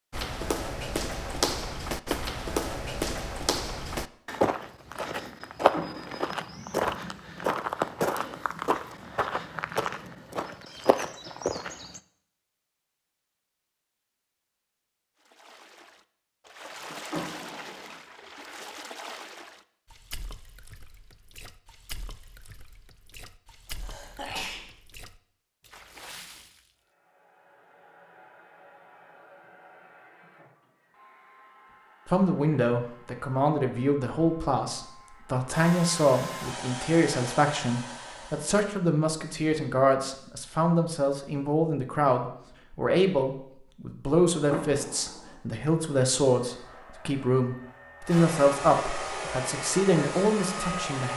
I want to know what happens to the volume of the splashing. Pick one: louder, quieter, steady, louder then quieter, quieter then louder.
quieter.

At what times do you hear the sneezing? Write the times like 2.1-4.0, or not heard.
23.7-24.6.